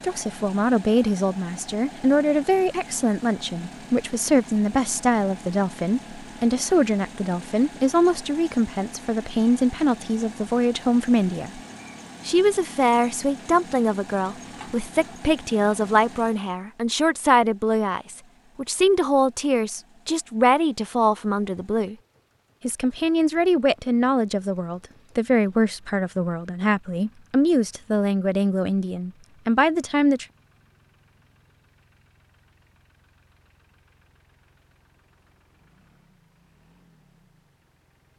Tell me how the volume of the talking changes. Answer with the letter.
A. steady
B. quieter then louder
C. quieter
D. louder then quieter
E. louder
A.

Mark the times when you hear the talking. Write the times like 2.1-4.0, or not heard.
0.0-11.6, 12.2-21.9, 22.6-30.2.